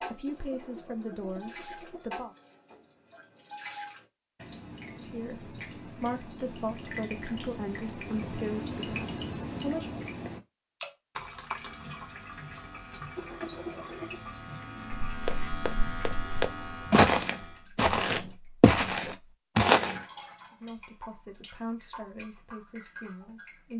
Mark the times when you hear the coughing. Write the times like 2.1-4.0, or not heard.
0.2-2.1, 13.2-14.2.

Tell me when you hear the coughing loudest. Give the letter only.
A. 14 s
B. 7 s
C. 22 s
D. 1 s
A.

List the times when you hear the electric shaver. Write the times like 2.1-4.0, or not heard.
11.6-17.7.